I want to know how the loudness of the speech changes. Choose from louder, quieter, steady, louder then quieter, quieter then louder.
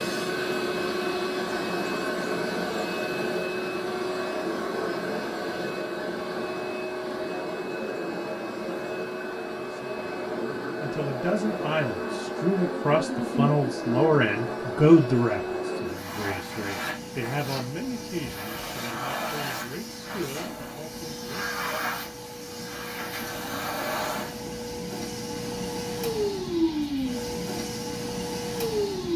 louder then quieter.